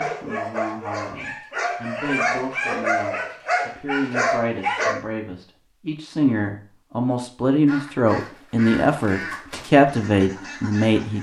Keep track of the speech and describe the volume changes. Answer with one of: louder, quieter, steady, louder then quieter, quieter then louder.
louder.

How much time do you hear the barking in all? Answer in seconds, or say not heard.
5 s.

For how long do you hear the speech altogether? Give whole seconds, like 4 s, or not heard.
11 s.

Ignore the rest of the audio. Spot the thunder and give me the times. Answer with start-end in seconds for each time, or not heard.
not heard.